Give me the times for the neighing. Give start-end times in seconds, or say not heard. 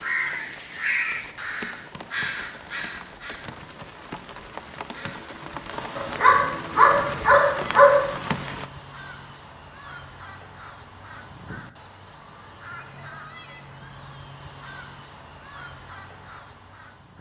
not heard.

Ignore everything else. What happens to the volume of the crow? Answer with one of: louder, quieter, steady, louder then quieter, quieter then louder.
quieter.